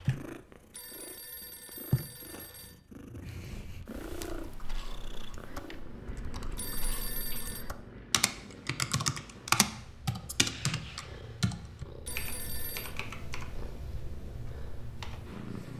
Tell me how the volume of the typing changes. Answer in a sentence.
The volume of the typing goes up, then down.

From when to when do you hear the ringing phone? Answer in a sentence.
The ringing phone can be heard from 0.7 to 2.8 s, from 6.5 to 7.7 s and from 12.1 to 12.9 s.